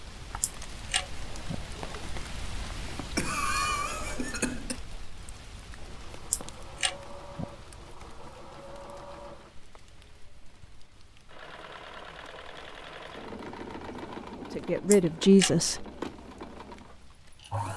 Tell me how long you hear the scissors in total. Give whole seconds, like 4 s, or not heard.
3 s.